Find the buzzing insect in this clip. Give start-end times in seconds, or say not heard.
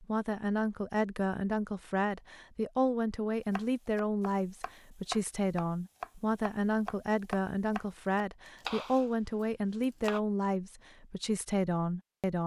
not heard.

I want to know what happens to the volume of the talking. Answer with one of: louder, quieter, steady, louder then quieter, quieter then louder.
steady.